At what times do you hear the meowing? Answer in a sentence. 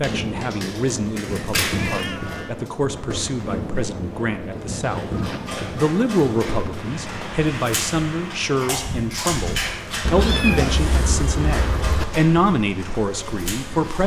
You can hear the meowing from 1.8 to 2.5 s, from 5.1 to 5.5 s and from 10.1 to 12.1 s.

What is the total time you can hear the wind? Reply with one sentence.
You can hear the wind for 14 seconds altogether.